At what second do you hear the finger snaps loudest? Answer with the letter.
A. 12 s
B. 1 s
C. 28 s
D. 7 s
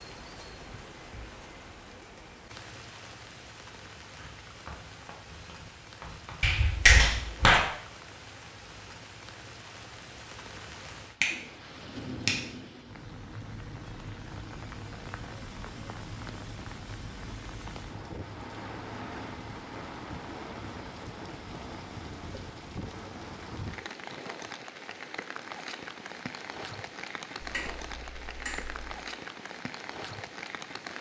D.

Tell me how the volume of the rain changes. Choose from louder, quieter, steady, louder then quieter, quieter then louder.
louder.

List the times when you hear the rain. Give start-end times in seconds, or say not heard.
0.0-30.9.